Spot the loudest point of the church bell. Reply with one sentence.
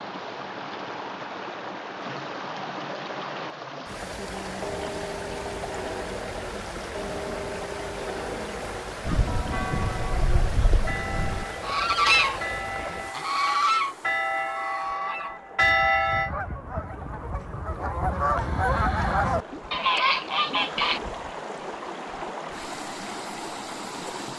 The volume of the church bell peaks at 16 seconds.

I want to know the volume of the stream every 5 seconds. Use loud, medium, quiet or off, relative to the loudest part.
loud, loud, loud, medium, loud.